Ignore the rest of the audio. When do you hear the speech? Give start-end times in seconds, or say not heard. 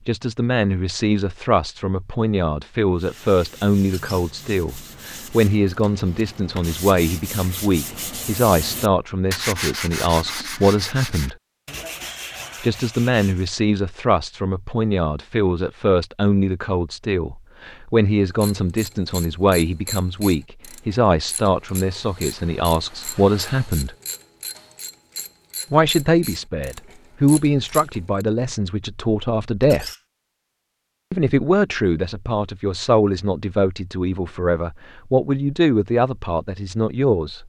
0.1-11.3, 12.6-23.9, 25.7-29.9, 31.1-37.4.